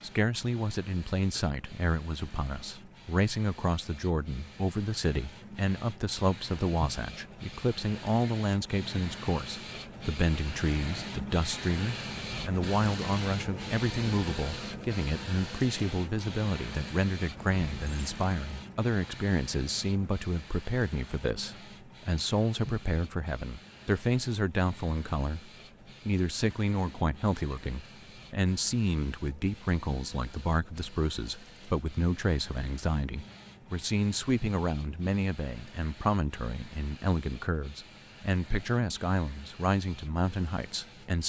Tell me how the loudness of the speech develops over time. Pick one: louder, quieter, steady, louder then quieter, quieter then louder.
steady.